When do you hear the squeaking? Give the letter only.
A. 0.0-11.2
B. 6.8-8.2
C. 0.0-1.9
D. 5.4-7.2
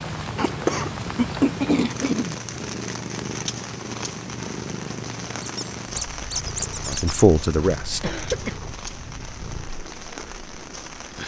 D.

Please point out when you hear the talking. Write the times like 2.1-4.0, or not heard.
6.8-8.2.